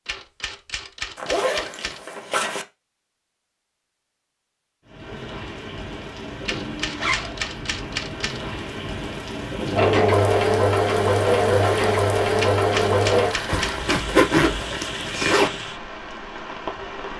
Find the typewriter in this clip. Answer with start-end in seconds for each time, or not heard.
0.1-2.0, 6.5-8.4, 12.3-13.9.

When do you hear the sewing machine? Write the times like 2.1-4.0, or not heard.
9.7-13.3.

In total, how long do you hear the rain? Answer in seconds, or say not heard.
12 s.